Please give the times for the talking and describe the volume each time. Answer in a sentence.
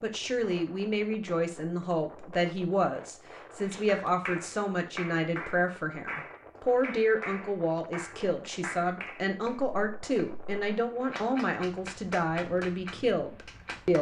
You can hear the talking from 0.0 to 13.9 s, at a steady volume.